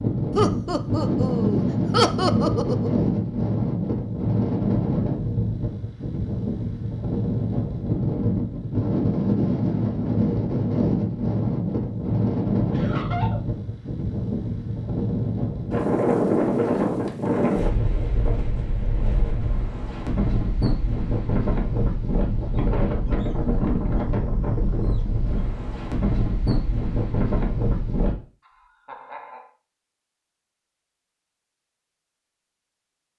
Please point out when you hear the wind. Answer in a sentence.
The wind can be heard from 0.0 to 28.1 s.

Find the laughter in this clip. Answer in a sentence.
You can hear the laughter from 0.3 to 2.9 s, from 12.7 to 13.4 s and from 28.4 to 29.4 s.